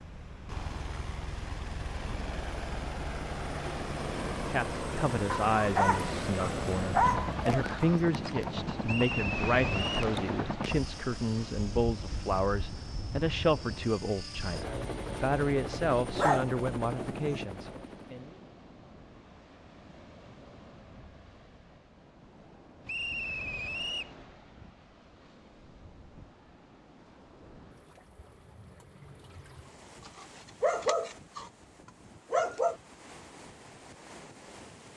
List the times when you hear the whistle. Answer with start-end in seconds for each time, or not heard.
8.8-10.1, 22.9-24.1.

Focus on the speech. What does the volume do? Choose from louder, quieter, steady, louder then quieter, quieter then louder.
steady.